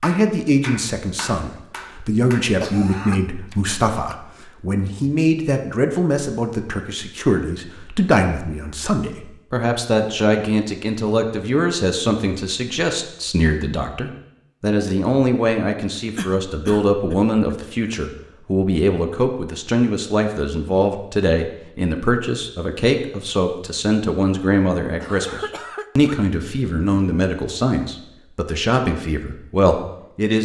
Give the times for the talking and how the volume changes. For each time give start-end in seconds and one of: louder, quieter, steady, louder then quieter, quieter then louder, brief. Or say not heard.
0.0-30.4 steady.